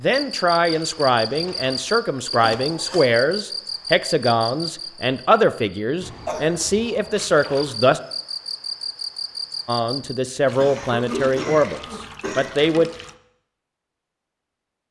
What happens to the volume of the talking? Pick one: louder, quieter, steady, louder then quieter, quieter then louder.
steady.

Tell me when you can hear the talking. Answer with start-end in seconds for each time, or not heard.
0.0-8.0, 9.7-12.9.